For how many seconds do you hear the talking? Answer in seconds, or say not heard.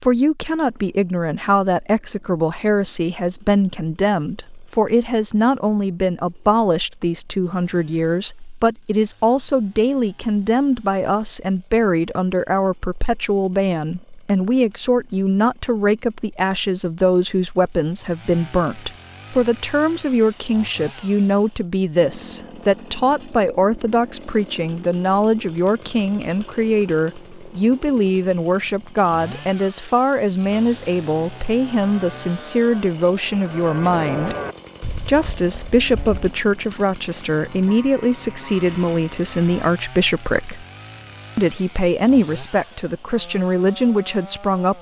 43 s.